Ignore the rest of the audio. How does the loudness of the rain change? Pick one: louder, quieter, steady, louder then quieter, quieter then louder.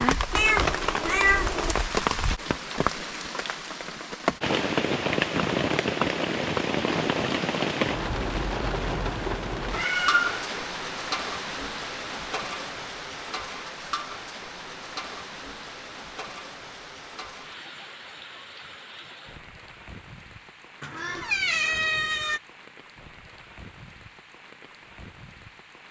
quieter.